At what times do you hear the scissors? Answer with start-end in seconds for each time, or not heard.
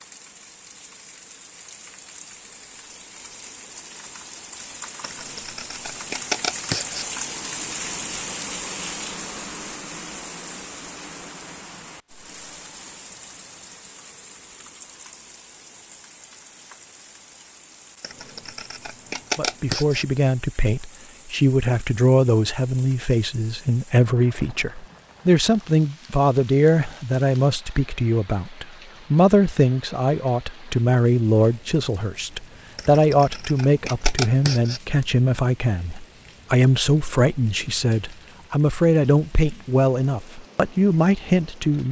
5.0-7.0, 18.0-20.1, 32.8-34.8.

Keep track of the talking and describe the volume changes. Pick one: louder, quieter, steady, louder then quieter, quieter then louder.
steady.